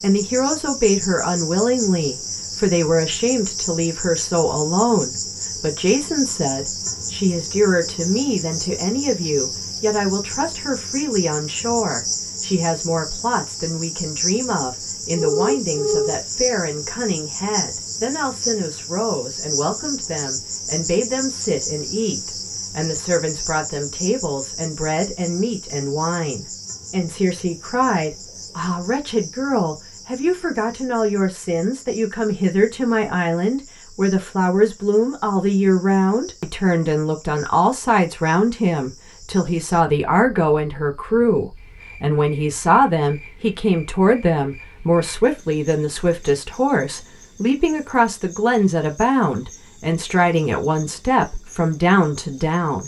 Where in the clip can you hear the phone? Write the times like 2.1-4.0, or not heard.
15.1-16.1.